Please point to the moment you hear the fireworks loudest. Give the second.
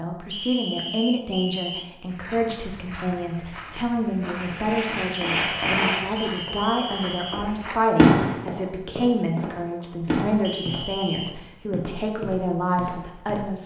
8 s.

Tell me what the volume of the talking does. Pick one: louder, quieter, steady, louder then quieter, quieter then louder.
steady.